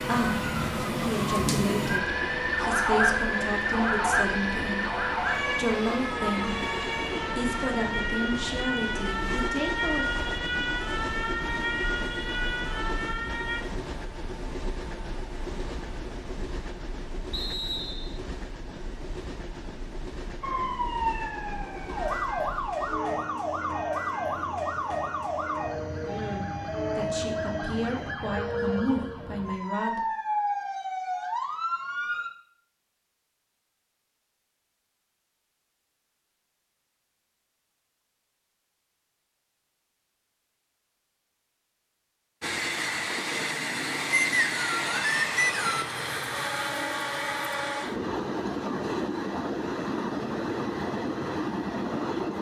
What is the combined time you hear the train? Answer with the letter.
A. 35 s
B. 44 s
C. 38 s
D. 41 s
C.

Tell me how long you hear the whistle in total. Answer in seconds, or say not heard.
3 s.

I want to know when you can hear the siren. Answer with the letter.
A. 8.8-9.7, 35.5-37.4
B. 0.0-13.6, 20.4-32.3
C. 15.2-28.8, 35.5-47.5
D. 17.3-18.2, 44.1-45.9
B.